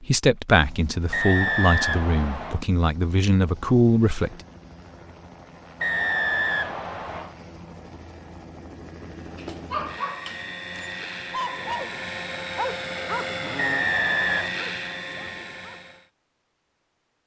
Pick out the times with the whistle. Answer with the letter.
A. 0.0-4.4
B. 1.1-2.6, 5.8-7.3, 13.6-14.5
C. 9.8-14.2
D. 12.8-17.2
B.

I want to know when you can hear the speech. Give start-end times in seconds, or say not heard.
0.0-4.4.